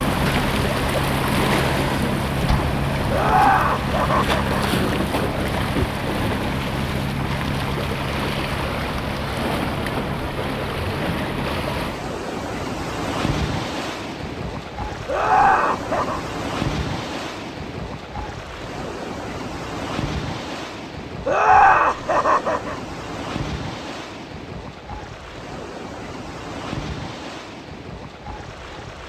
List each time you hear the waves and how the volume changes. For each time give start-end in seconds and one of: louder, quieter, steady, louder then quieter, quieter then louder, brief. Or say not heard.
0.0-29.0 quieter.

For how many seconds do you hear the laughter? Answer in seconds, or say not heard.
4 s.